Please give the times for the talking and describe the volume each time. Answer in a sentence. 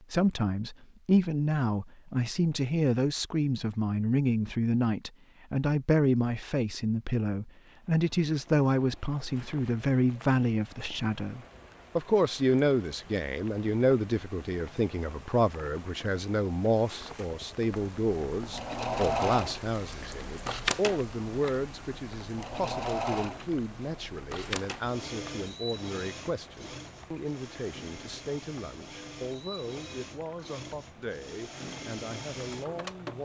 The talking can be heard from 0.1 to 33.1 s, getting quieter.